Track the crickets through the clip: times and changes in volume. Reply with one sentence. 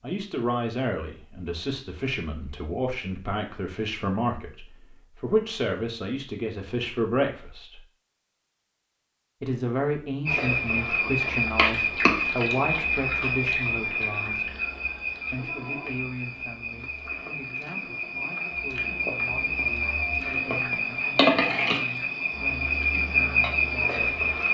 The crickets can be heard from 10.2 to 24.5 s, getting quieter then louder.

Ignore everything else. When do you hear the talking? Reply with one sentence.
You can hear the talking from 0.0 to 7.8 s, from 9.4 to 14.5 s and from 15.3 to 24.2 s.